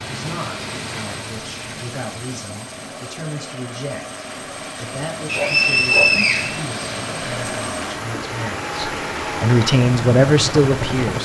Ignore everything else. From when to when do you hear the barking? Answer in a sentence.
The barking can be heard from 5.3 to 6.2 s.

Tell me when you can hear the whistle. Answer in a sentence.
The whistle can be heard from 5.2 to 6.5 s.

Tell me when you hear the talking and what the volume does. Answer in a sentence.
You can hear the talking from 0.1 to 11.2 s, getting louder.